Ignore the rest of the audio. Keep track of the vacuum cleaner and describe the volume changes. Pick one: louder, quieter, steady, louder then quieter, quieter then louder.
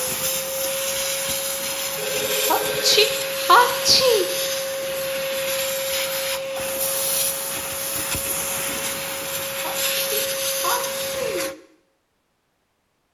steady.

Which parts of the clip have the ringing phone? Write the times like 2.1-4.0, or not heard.
1.9-3.0.